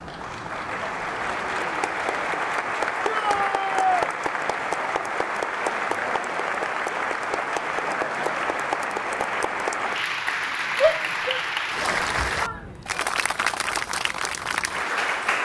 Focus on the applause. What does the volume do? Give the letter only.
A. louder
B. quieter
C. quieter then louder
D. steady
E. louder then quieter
D.